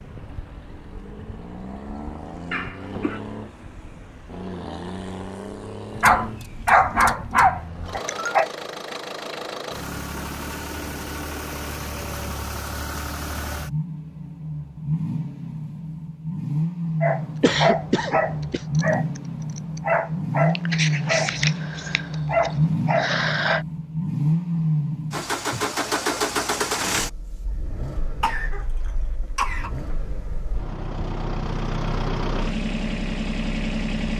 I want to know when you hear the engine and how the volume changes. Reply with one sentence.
You can hear the engine from 0.0 to 34.1 s, getting louder then quieter.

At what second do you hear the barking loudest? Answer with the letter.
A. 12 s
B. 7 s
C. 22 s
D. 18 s
B.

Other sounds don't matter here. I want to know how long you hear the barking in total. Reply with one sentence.
You can hear the barking for 9 seconds altogether.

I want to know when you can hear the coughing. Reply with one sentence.
The coughing can be heard from 2.5 to 3.2 s, from 17.4 to 18.6 s and from 28.2 to 29.9 s.